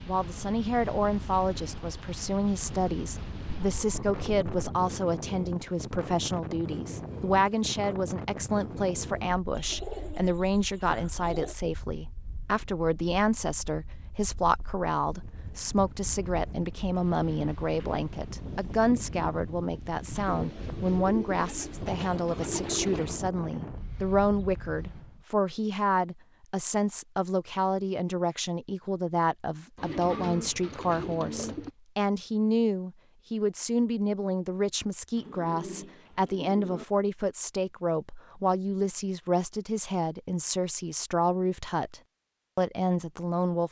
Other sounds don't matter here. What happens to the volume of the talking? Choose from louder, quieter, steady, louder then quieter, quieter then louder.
steady.